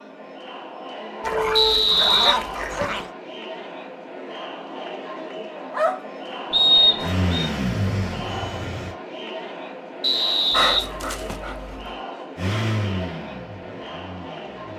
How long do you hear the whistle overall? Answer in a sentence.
The whistle can be heard for 4 seconds in total.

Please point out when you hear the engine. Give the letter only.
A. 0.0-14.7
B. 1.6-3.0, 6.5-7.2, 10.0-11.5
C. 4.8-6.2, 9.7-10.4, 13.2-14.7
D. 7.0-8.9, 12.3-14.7
D.